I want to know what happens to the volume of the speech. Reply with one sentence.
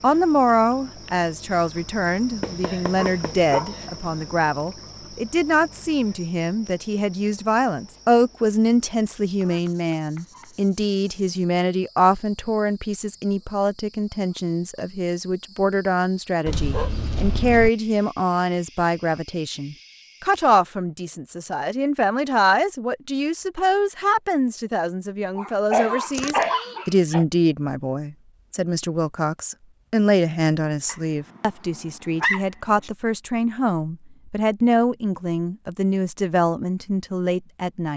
The volume of the speech stays about the same.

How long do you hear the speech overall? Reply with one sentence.
The speech can be heard for 38 seconds in total.